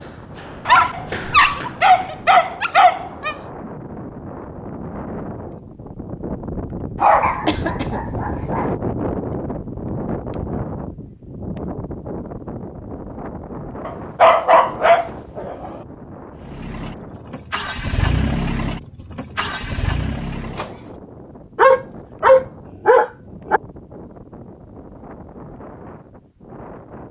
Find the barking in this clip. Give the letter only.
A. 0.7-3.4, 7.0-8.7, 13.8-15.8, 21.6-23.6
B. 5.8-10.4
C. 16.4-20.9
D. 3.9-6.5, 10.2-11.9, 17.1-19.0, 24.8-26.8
A.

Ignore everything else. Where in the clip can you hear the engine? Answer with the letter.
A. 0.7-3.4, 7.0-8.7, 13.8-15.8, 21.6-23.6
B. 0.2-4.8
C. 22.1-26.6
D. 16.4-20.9
D.